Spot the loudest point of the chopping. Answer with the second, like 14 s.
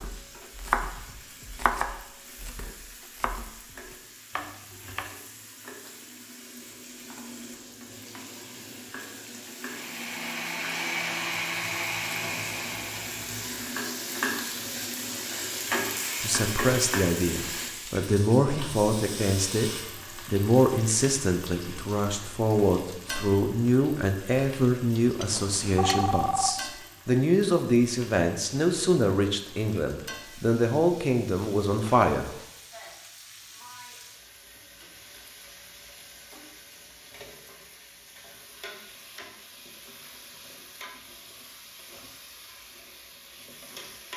1 s.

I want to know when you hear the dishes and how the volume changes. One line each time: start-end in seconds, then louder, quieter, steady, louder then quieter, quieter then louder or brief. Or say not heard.
not heard.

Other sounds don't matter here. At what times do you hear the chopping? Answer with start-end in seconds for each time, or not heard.
0.0-5.2.